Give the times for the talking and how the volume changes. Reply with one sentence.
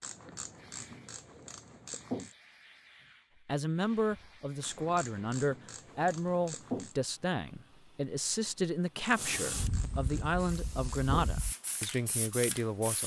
You can hear the talking from 3.5 to 13.0 s, at a steady volume.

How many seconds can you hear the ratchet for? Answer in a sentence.
You can hear the ratchet for 7 seconds altogether.